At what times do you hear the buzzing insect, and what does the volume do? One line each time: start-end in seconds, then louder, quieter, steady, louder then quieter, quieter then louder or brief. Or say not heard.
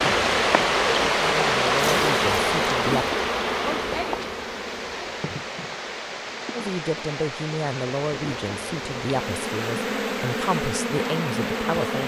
0.0-12.0 quieter then louder.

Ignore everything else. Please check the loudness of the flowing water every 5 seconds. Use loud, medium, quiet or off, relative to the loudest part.
loud, medium, medium.